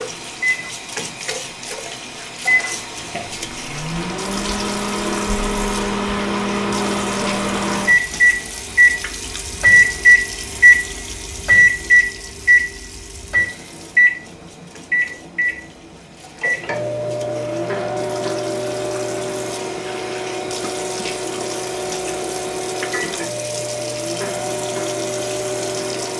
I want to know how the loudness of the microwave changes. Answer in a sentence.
The loudness of the microwave goes up, then down.